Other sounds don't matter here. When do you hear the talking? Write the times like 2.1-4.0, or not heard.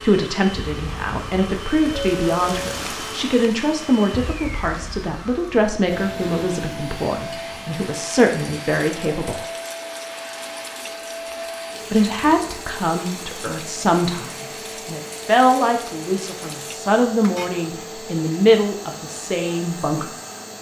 0.0-9.4, 11.9-20.1.